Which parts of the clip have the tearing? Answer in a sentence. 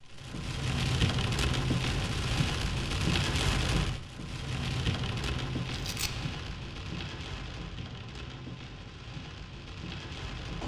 The tearing can be heard from 5.7 to 6.2 s.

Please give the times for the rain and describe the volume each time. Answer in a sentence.
You can hear the rain from 0.0 to 10.6 s, getting quieter.